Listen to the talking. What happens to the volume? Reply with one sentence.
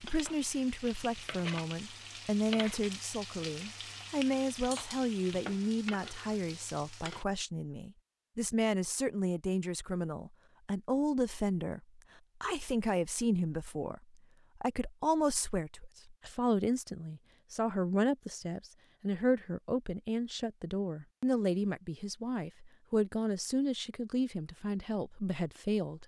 The volume of the talking stays about the same.